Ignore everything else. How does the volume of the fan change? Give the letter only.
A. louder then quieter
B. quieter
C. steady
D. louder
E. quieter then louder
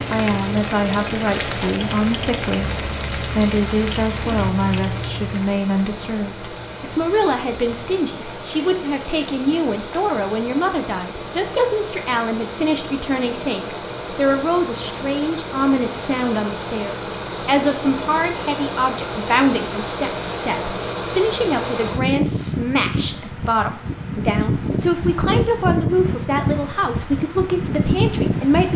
D.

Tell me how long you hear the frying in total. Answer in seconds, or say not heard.
10 s.